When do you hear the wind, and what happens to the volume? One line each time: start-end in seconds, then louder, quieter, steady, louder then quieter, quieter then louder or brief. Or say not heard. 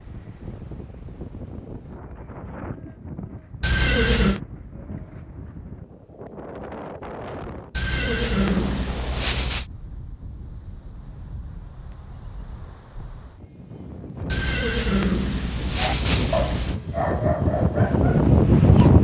0.0-18.9 louder.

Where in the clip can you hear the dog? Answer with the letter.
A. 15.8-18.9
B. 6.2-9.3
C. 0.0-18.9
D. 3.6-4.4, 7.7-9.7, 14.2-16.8
A.